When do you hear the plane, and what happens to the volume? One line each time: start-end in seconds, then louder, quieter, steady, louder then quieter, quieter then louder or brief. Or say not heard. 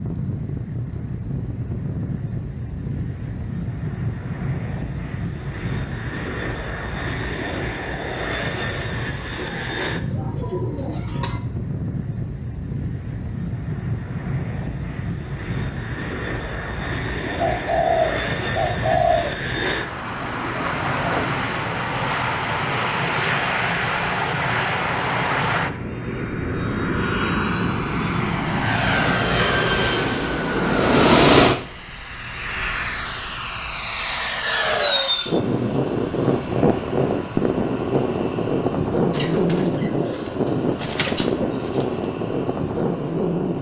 0.0-43.5 louder.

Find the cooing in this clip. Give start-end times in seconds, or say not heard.
9.3-11.4, 17.4-19.4, 39.1-41.7.